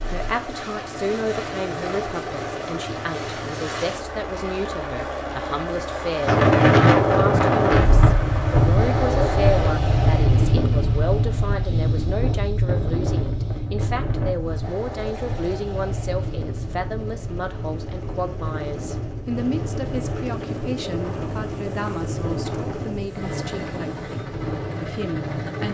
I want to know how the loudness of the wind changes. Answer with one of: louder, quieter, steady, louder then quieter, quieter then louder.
quieter.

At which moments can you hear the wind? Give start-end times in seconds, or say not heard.
6.2-25.6.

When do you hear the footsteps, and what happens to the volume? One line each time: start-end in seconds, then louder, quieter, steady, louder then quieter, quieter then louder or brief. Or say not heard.
not heard.